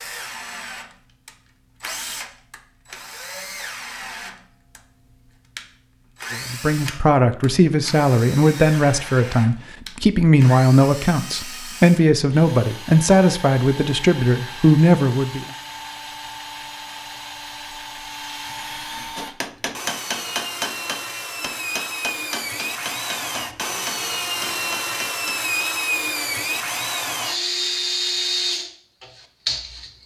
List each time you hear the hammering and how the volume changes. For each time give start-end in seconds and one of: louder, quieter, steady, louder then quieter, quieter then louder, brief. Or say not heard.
19.1-25.4 quieter.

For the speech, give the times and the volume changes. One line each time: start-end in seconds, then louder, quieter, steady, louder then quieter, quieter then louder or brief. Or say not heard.
6.3-15.4 steady.